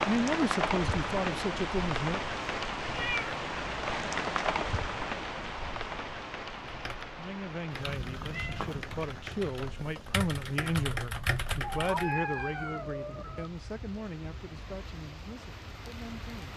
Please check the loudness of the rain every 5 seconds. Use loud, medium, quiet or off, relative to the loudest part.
loud, medium, quiet, quiet.